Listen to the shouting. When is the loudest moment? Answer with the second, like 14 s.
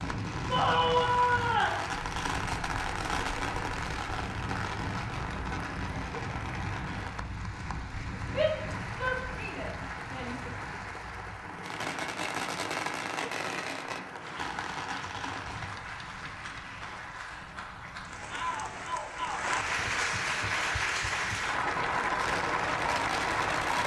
1 s.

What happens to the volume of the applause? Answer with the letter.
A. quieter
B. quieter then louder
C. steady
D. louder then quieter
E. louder
E.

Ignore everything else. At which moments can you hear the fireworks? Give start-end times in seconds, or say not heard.
0.0-7.2, 11.6-15.8, 22.2-23.8.